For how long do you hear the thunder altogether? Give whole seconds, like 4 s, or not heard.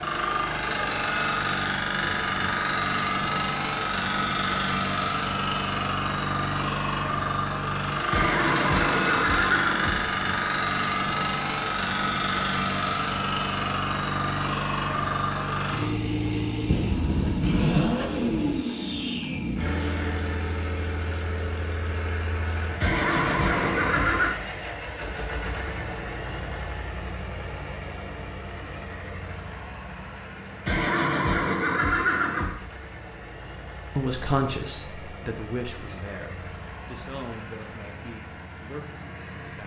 2 s.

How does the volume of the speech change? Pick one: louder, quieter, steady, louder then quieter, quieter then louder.
quieter.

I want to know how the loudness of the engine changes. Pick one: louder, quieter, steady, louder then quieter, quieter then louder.
quieter.